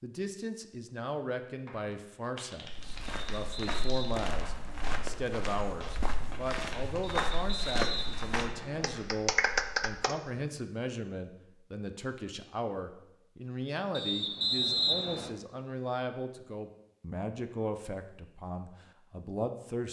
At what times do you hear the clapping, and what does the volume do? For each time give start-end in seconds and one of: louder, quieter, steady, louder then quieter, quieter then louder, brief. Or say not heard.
1.6-10.2 louder.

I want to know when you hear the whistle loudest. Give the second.
15 s.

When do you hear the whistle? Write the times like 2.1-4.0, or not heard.
3.3-5.0, 7.0-8.9, 13.9-15.3.